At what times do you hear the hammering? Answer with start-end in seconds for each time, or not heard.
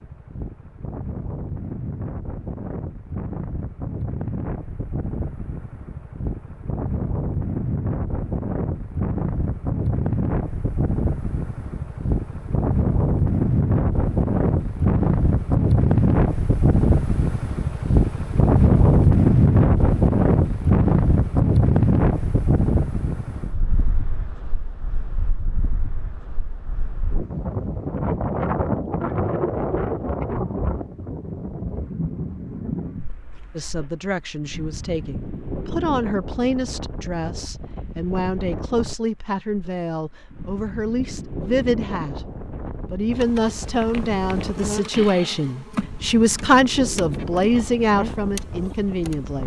not heard.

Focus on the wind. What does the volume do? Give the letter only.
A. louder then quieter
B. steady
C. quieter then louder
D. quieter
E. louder
A.